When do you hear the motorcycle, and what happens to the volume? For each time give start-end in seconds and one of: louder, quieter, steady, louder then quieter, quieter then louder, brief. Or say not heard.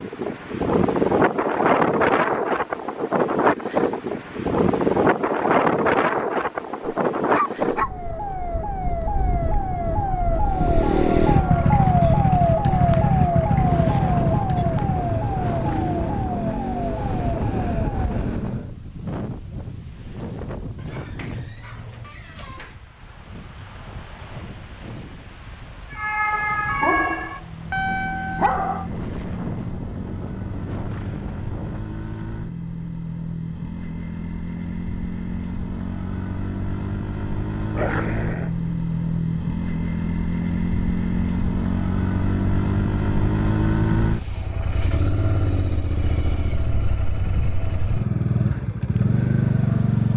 10.4-18.7 quieter
27.3-50.1 louder.